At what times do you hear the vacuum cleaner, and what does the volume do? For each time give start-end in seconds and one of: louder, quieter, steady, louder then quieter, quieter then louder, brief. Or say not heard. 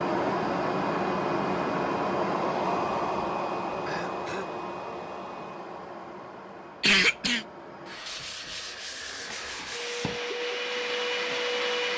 0.0-11.9 quieter then louder.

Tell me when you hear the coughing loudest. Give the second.
7 s.